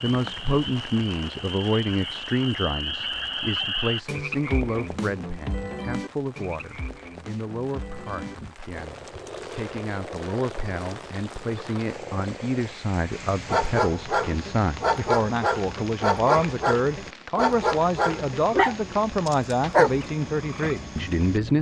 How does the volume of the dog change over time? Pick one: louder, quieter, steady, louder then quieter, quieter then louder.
steady.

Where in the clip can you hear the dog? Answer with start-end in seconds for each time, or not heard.
13.4-20.1.